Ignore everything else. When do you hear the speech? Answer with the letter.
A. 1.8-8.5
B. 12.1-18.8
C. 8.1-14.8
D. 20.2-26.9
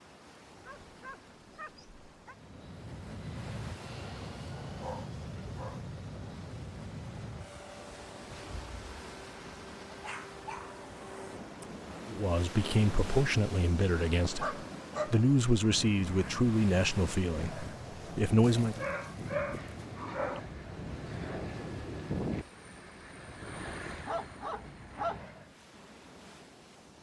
B.